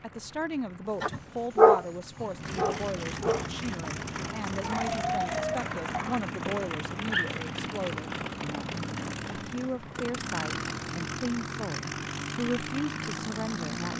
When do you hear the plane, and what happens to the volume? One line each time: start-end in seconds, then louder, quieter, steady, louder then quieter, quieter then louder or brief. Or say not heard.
0.0-13.9 louder.